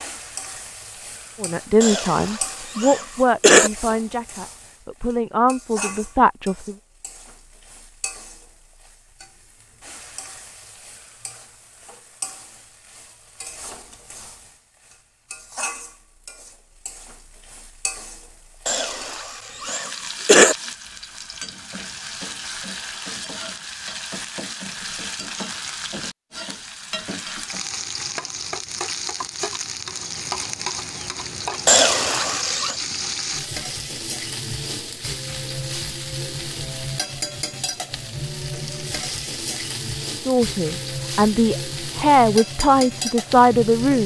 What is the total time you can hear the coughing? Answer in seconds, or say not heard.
5 s.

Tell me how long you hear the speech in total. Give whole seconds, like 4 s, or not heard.
9 s.